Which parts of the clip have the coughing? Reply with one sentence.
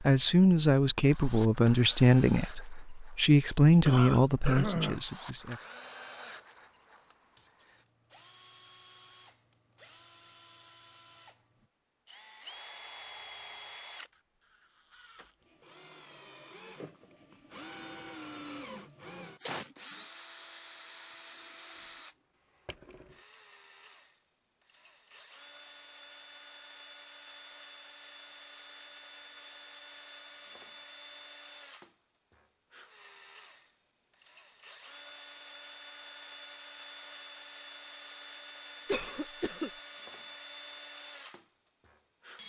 You can hear the coughing from 3.9 to 5.0 s, from 19.4 to 20.1 s and from 38.9 to 39.7 s.